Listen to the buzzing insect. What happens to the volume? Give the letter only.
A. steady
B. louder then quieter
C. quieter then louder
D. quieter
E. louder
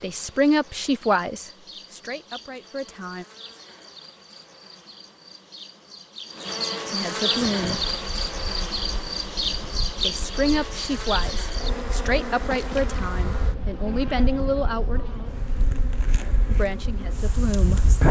B.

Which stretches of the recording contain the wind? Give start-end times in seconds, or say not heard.
7.3-18.0.